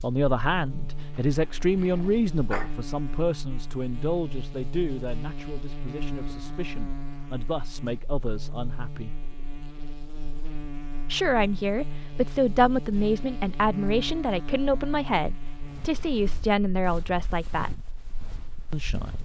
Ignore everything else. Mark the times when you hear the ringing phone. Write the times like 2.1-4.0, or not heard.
not heard.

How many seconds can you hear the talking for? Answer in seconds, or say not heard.
16 s.